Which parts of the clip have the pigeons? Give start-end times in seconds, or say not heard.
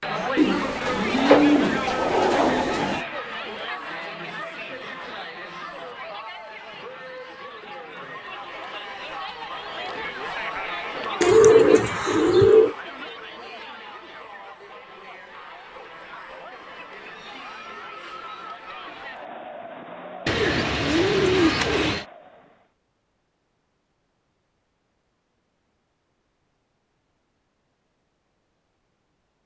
0.3-3.0, 11.2-12.8, 20.2-22.1.